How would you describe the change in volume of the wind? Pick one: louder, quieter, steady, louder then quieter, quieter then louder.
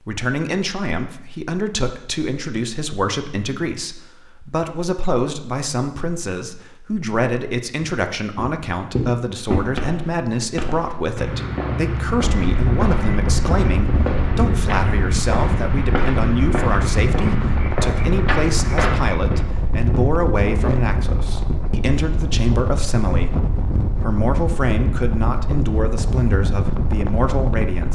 steady.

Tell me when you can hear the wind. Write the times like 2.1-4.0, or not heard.
12.3-27.8.